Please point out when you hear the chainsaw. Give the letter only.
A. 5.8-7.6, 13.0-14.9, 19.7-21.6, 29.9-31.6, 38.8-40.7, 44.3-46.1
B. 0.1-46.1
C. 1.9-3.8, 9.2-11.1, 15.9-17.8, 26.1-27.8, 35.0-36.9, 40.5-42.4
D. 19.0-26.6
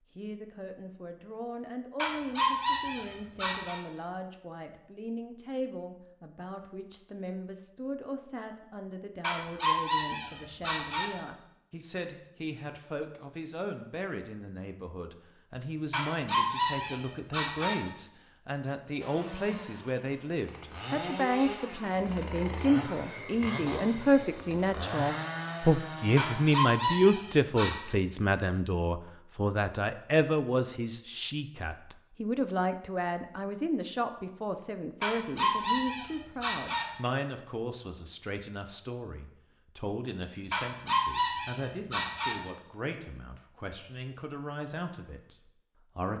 D.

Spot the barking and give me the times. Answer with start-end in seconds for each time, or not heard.
1.9-3.8, 9.2-11.1, 15.9-17.8, 26.1-27.8, 35.0-36.9, 40.5-42.4.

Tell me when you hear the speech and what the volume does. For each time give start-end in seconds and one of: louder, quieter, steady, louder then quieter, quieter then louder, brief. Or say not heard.
0.1-46.1 louder then quieter.